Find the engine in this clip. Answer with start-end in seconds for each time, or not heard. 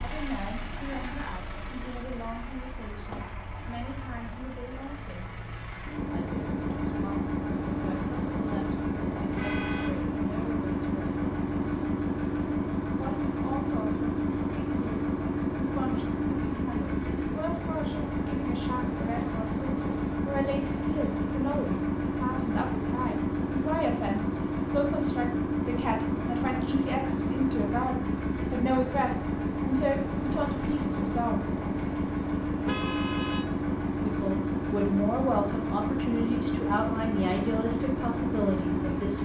0.0-39.2.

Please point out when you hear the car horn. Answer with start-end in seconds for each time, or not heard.
8.8-9.9, 32.6-33.5.